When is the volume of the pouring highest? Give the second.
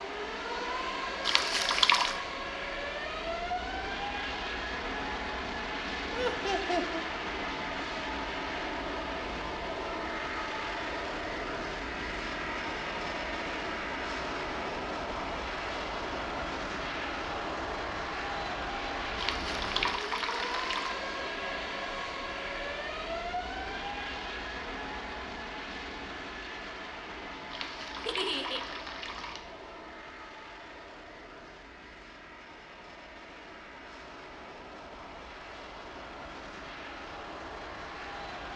2 s.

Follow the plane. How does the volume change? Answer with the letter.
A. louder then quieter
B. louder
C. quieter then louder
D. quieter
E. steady
D.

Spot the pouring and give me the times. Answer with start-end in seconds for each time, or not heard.
1.2-2.2, 19.1-21.0, 27.5-29.4.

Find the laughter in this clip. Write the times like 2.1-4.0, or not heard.
6.1-7.0, 28.1-28.6.